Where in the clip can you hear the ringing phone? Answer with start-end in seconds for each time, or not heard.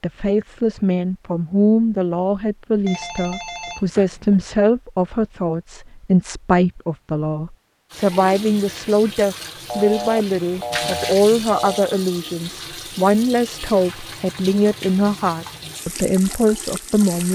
2.9-4.5, 9.7-11.9.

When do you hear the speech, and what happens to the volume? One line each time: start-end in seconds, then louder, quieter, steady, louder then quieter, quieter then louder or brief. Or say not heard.
0.0-17.3 steady.